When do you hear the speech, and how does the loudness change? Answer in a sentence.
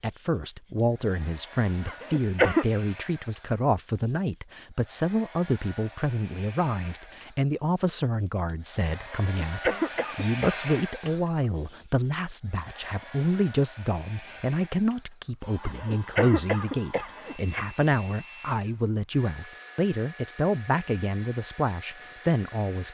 The speech can be heard from 0.0 to 22.8 s, at a steady volume.